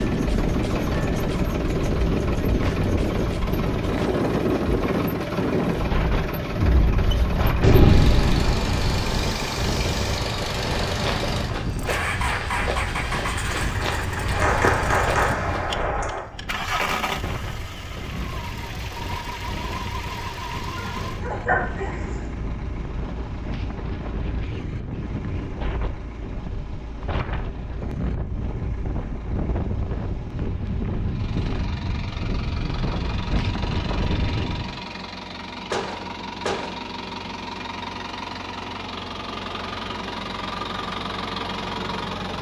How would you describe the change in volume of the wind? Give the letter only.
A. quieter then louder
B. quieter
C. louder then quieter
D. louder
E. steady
A.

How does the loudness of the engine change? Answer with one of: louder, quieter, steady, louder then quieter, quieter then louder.
quieter then louder.